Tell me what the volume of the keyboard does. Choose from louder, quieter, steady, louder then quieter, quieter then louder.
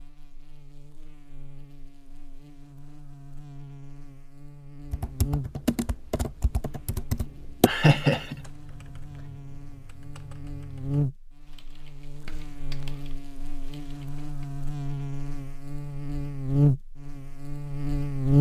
quieter.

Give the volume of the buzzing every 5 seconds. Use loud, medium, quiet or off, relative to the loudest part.
quiet, quiet, medium, loud.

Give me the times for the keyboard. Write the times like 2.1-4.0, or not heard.
4.9-14.5.